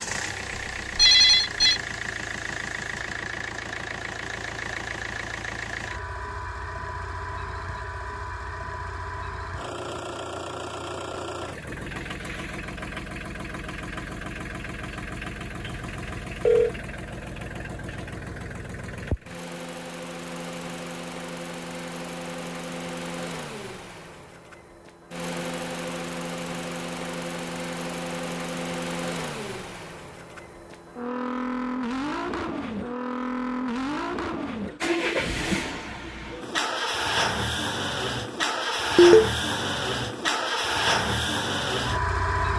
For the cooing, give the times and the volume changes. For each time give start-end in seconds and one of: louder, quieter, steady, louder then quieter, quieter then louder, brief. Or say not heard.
not heard.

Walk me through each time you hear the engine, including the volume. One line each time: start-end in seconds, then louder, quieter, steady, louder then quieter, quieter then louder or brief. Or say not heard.
0.0-42.5 louder.